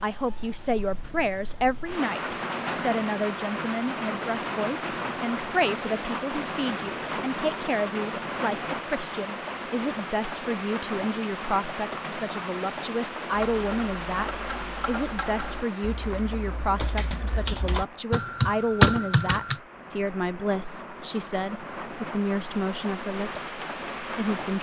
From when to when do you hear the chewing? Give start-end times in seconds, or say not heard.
not heard.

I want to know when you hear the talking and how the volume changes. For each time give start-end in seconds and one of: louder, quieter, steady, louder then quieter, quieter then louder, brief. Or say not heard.
0.0-24.5 steady.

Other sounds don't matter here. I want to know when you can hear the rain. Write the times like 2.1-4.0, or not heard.
0.0-24.5.